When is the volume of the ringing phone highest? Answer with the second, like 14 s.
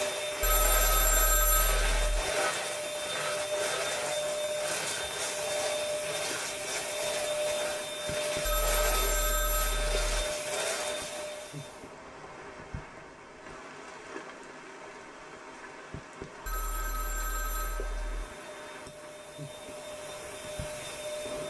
1 s.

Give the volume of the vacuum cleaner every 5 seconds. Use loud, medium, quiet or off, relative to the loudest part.
loud, loud, loud, quiet, medium.